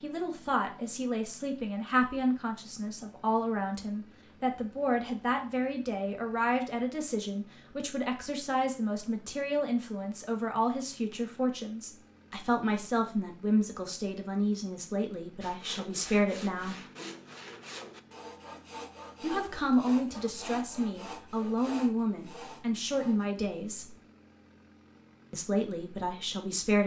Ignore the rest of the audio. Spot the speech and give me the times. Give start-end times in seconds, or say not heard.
0.0-16.8, 19.2-23.9, 25.3-26.8.